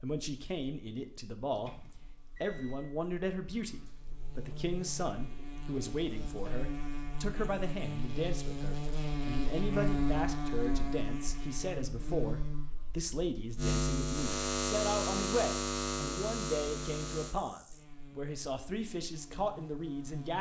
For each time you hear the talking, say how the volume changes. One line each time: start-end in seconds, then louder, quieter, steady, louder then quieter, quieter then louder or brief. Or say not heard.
0.0-20.3 steady.